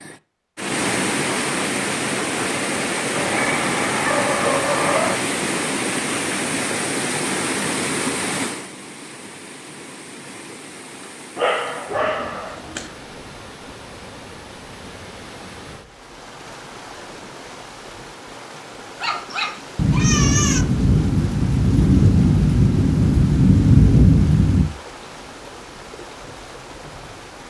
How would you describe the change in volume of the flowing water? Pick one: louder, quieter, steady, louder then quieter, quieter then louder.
quieter.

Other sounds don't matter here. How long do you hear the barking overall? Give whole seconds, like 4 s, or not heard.
5 s.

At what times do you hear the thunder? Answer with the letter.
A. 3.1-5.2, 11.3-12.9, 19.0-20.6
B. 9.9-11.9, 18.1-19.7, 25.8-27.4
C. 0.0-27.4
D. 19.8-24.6
D.